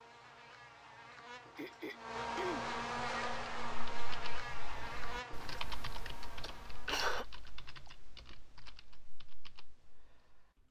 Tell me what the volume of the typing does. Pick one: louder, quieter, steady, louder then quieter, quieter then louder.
louder then quieter.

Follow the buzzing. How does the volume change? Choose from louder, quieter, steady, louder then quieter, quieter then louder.
louder then quieter.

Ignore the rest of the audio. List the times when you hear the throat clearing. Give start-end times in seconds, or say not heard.
1.6-2.7, 6.4-7.2.